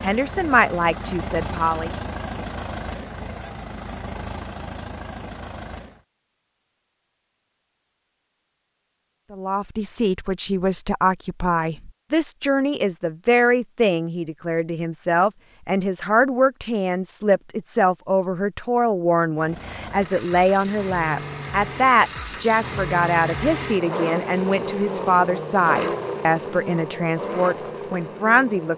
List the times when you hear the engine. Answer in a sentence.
You can hear the engine from 0.0 to 6.0 s and from 19.4 to 28.7 s.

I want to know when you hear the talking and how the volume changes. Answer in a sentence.
The talking can be heard briefly from 0.0 to 1.9 s; and from 9.3 to 28.7 s, at a steady volume.